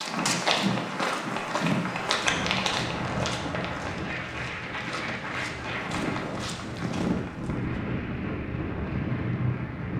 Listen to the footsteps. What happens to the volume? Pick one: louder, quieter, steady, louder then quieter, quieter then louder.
quieter then louder.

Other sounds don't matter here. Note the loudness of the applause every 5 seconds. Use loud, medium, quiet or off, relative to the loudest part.
loud, medium.